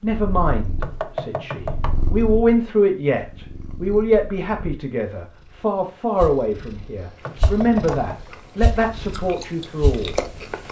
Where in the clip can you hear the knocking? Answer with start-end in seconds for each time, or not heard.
0.8-2.1, 7.2-8.3.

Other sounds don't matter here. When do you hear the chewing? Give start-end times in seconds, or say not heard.
7.2-10.6.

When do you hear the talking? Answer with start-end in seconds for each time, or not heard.
0.0-10.2.